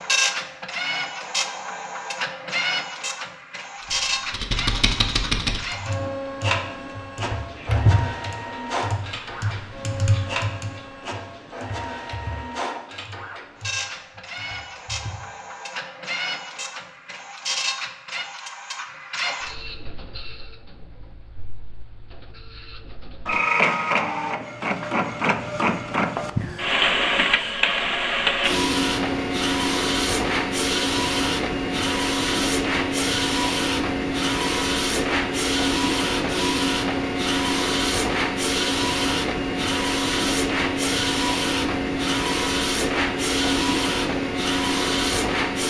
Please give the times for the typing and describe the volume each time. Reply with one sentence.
You can hear the typing from 3.9 to 15.2 s, getting quieter.